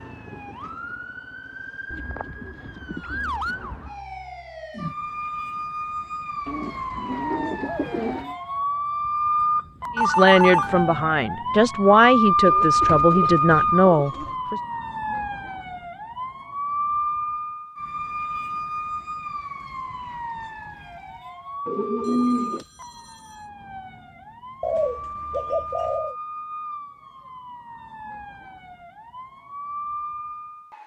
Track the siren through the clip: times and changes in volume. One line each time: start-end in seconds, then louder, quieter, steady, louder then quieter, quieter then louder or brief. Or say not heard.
0.0-30.8 louder then quieter.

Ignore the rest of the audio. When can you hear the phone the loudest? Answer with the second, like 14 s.
10 s.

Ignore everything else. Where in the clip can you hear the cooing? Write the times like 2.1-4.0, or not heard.
1.9-3.9, 6.5-8.3, 12.4-14.3, 21.6-22.6, 24.6-26.1.